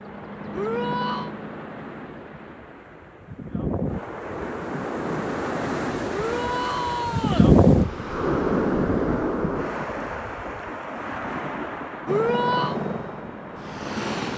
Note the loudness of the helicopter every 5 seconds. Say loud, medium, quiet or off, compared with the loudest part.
medium, off, loud.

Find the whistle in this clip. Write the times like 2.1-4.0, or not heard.
not heard.